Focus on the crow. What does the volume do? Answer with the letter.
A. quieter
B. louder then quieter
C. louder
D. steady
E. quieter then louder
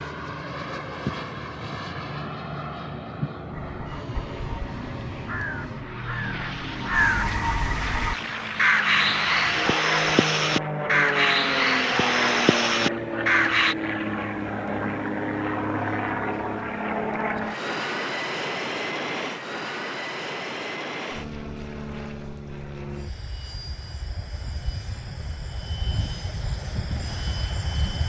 C.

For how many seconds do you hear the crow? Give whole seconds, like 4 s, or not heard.
10 s.